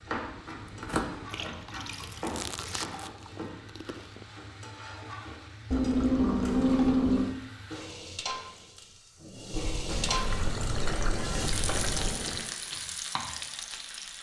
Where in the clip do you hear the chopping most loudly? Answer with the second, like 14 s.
1 s.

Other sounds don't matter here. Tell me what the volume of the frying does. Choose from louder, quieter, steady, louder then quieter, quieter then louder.
louder.